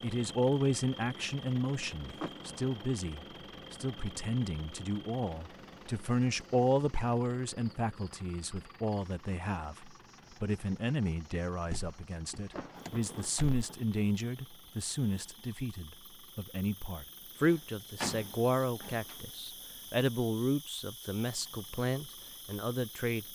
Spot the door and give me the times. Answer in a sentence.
You can hear the door from 2.2 to 2.8 s, from 11.7 to 13.7 s and from 18.0 to 18.9 s.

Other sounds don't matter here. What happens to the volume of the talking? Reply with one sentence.
The volume of the talking stays about the same.